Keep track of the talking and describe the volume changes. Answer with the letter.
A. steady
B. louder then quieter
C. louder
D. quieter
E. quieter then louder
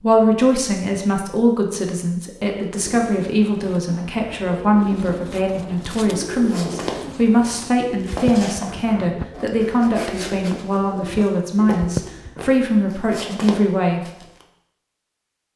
A.